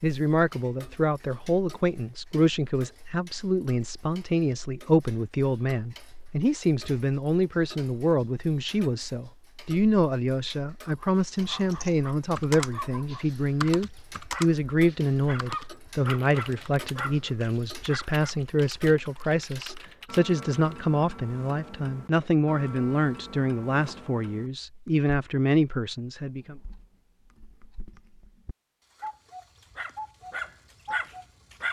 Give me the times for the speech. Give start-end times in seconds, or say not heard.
0.0-26.6.